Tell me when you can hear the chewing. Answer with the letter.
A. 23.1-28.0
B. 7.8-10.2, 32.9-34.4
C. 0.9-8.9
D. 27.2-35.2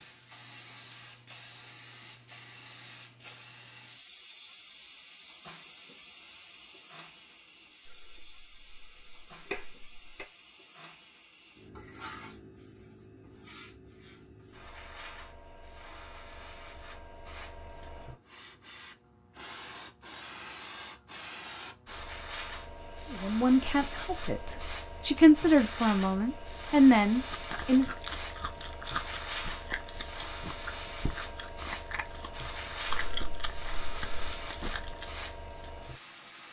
D.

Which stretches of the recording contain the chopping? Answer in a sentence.
The chopping can be heard from 7.8 to 10.2 s and from 32.9 to 34.4 s.